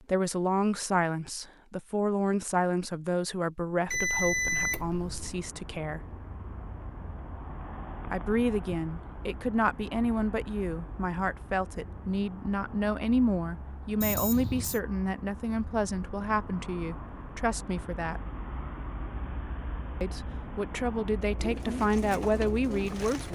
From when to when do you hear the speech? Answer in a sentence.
You can hear the speech from 0.1 to 6.0 s, from 8.1 to 18.2 s and from 20.0 to 23.3 s.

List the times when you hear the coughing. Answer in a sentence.
You can't hear the coughing here.